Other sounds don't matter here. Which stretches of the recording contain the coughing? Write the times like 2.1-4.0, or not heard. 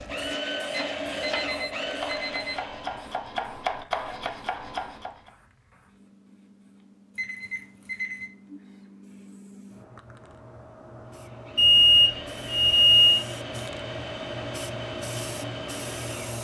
not heard.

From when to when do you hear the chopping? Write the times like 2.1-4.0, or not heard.
0.0-5.3.